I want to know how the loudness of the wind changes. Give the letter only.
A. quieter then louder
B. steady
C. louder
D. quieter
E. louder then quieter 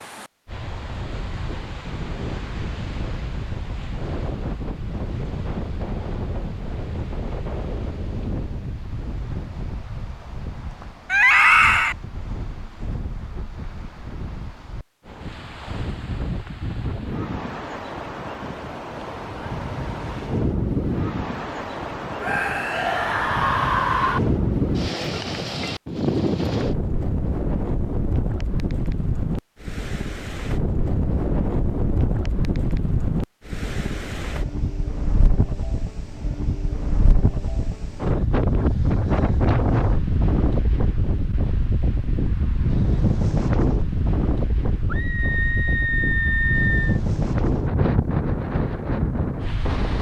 C.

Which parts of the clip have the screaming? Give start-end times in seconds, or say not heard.
11.1-11.9, 22.2-24.2, 44.9-47.0.